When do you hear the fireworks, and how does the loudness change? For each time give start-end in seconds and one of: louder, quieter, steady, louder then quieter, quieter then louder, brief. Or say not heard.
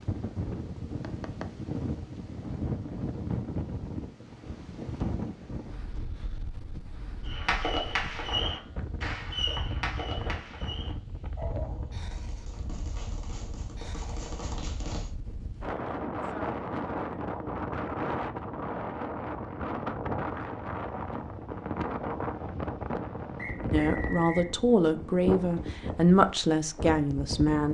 7.2-15.1 quieter then louder.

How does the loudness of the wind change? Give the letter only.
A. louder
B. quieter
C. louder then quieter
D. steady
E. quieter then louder
E.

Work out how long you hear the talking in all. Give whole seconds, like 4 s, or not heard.
4 s.